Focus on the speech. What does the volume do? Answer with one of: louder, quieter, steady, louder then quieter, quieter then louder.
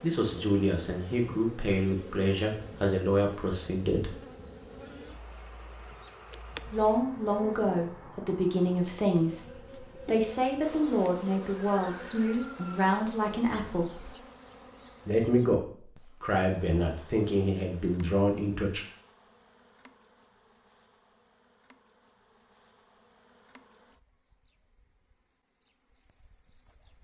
steady.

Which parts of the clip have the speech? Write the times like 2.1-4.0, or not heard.
0.0-4.2, 6.7-14.1, 15.1-18.9.